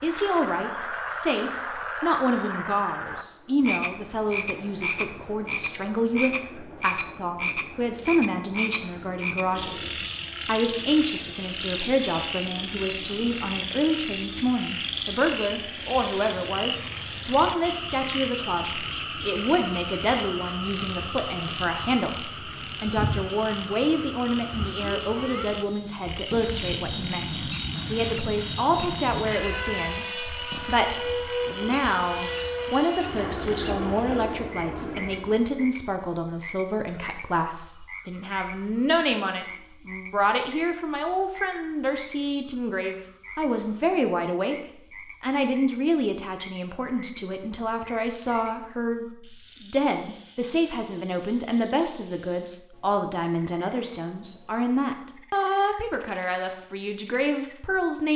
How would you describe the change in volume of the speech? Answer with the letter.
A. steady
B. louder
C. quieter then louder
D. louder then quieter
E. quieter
A.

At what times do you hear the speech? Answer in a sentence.
The speech can be heard from 0.0 to 58.1 s.